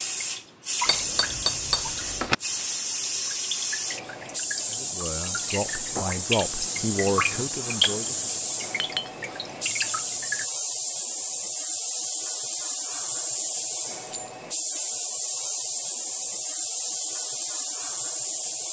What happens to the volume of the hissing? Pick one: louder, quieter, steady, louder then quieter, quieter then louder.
steady.